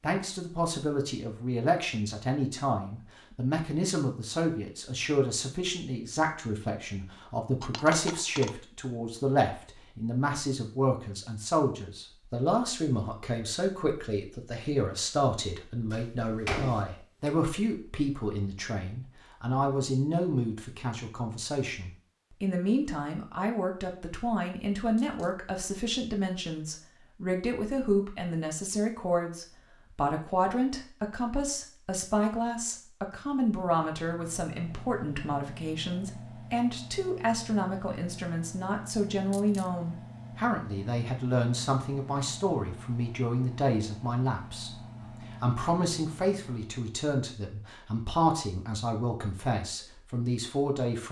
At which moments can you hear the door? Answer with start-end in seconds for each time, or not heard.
15.9-17.3.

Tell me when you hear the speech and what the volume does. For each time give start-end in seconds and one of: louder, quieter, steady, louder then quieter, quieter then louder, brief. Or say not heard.
0.0-51.0 steady.